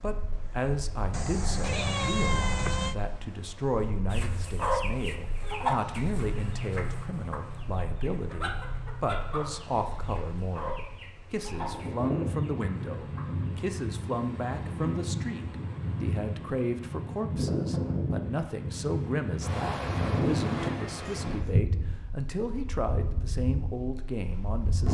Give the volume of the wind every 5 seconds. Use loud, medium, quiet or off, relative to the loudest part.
quiet, quiet, loud, loud, loud.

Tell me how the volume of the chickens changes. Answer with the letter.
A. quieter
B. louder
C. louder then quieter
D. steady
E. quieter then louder
A.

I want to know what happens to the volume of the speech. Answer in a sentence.
The volume of the speech stays about the same.